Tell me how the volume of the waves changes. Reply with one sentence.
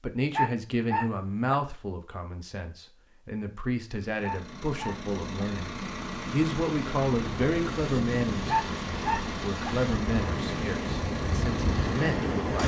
The loudness of the waves goes up.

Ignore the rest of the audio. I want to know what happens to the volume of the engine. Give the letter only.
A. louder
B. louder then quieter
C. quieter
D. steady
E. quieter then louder
D.